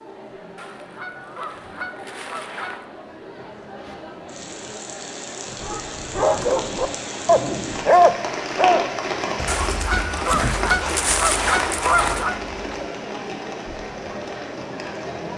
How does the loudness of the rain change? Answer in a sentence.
The loudness of the rain goes up, then down.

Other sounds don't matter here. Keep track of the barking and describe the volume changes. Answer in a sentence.
The loudness of the barking goes up, then down.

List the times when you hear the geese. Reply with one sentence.
The geese can be heard from 0.6 to 2.9 s and from 9.4 to 12.3 s.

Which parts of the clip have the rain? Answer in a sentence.
The rain can be heard from 3.8 to 15.3 s.